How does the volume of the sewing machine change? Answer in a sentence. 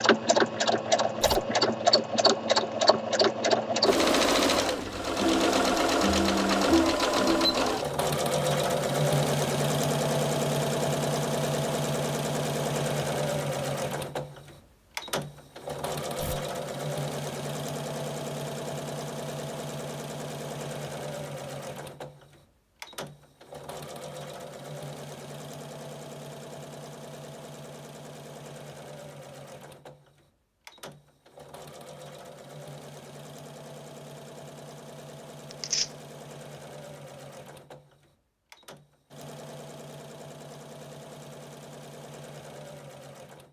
The loudness of the sewing machine goes down.